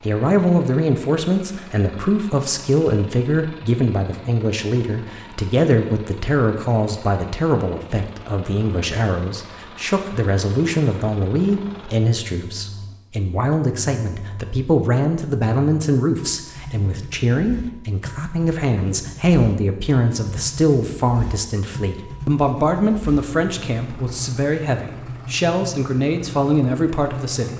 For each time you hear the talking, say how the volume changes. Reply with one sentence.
You can hear the talking from 0.0 to 27.5 s, at a steady volume.